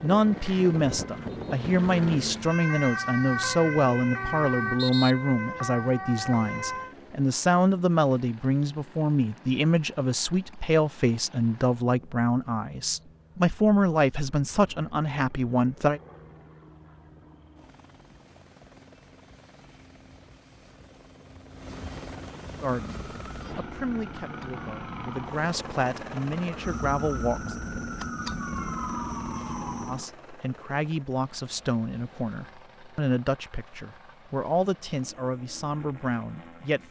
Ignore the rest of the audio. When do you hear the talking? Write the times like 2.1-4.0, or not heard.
0.0-16.0, 22.6-27.6, 29.9-36.8.